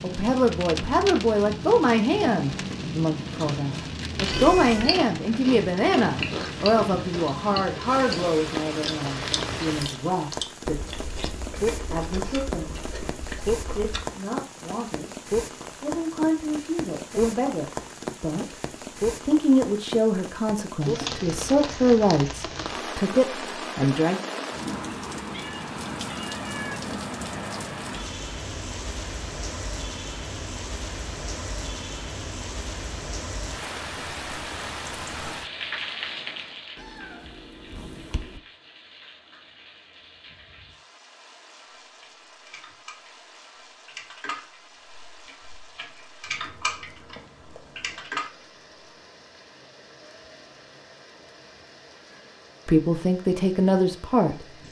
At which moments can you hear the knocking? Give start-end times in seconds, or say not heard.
not heard.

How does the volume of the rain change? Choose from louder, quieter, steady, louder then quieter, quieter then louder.
quieter.